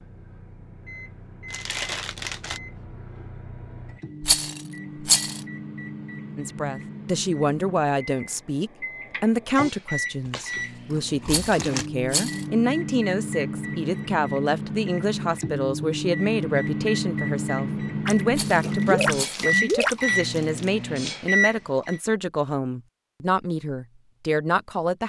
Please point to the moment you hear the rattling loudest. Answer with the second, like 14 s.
5 s.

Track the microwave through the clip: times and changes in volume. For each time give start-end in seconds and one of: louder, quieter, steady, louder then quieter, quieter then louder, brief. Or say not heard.
0.0-22.0 louder.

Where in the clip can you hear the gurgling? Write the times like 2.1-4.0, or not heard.
18.1-20.1.